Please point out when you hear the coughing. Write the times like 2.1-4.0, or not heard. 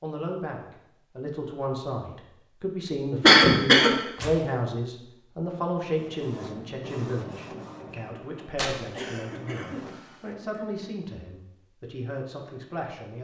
3.2-3.9, 8.9-10.9.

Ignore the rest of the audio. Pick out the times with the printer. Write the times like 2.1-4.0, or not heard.
5.9-10.3.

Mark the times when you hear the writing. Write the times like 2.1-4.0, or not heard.
not heard.